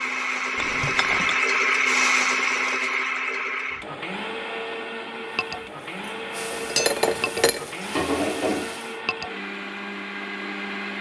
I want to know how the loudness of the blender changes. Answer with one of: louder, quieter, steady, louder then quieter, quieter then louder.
quieter.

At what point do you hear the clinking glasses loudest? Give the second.
7 s.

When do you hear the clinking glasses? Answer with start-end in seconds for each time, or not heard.
0.6-1.4, 6.5-7.7.